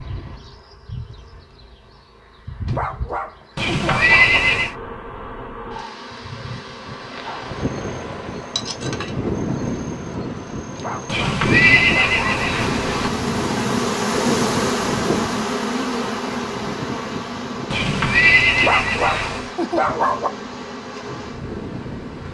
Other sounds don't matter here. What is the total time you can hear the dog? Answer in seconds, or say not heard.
5 s.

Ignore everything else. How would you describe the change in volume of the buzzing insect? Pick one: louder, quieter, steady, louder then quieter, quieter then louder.
louder then quieter.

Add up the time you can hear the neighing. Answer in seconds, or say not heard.
5 s.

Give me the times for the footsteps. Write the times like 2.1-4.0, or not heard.
not heard.